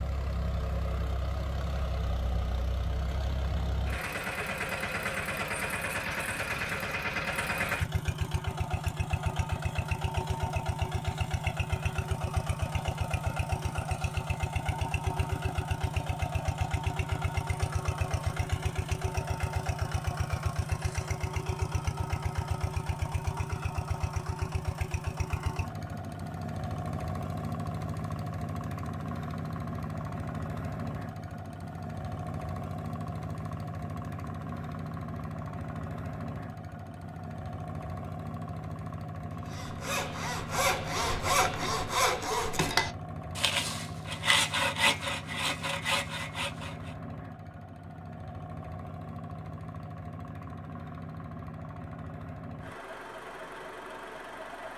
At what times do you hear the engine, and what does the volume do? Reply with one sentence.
You can hear the engine from 0.0 to 54.7 s, getting quieter.